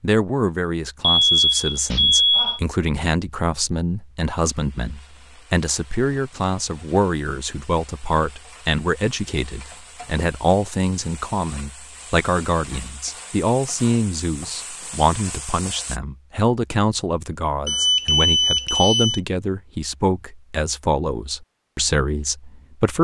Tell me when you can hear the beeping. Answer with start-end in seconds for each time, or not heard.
1.0-2.6, 17.6-19.2.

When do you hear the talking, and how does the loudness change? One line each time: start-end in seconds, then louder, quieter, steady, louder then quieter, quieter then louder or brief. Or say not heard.
0.0-22.9 steady.